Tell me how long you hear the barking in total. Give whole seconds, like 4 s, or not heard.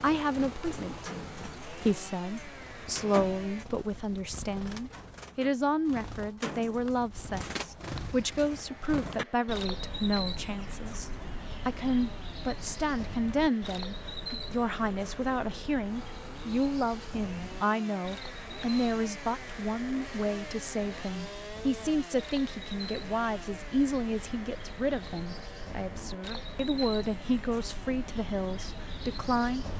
not heard.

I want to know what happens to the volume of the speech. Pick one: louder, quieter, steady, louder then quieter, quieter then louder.
steady.